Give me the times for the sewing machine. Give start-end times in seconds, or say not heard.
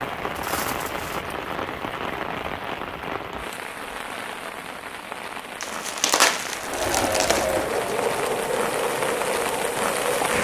6.5-10.3.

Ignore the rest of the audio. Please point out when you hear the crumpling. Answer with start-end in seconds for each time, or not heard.
0.3-1.2, 5.6-7.5.